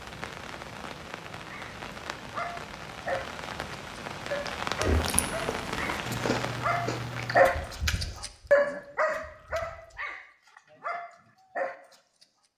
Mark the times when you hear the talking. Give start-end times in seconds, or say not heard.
not heard.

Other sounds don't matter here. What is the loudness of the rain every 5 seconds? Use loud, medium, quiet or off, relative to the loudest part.
loud, loud, off.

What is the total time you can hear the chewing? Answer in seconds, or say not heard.
5 s.